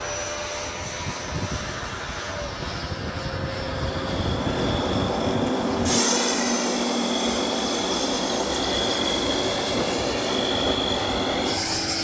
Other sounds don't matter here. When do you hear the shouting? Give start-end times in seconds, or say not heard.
not heard.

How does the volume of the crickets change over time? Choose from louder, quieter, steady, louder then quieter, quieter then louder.
steady.